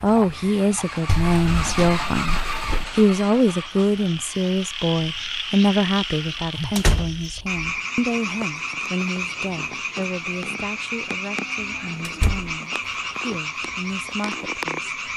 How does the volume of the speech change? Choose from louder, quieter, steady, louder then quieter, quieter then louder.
quieter.